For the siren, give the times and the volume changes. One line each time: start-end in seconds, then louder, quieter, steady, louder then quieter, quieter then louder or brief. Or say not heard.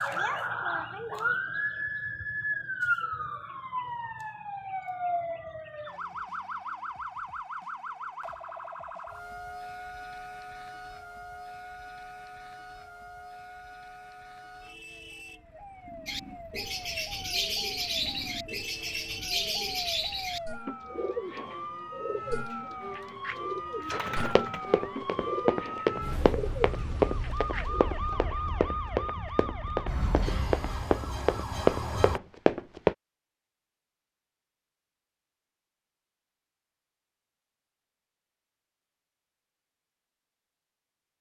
0.0-32.2 quieter then louder.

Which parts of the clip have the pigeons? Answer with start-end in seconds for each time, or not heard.
16.1-27.9.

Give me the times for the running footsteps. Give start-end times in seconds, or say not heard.
24.2-33.0.